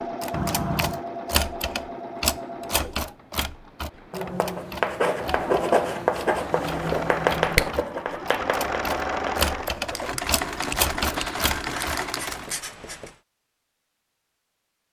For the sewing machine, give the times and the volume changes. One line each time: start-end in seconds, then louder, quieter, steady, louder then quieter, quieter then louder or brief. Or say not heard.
0.0-12.6 quieter then louder.